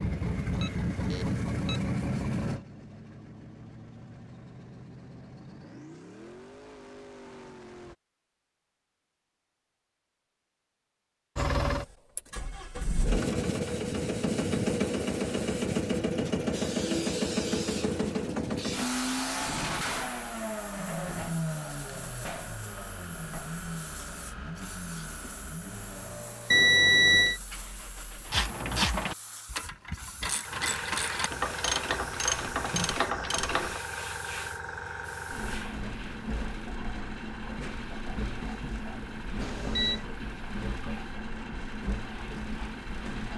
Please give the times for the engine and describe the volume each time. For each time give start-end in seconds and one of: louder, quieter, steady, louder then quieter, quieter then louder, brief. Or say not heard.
0.0-8.0 quieter
11.3-28.4 quieter
35.3-43.3 steady.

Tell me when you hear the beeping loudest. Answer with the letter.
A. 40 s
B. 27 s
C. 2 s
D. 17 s
B.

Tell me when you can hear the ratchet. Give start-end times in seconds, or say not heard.
28.3-33.8.